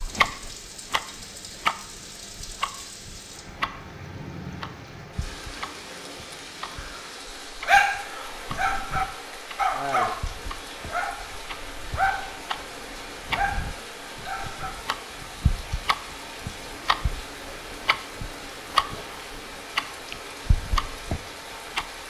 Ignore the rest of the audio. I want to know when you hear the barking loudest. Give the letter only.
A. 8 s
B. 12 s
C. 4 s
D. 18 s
A.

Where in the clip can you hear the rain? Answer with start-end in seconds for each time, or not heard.
0.0-22.0.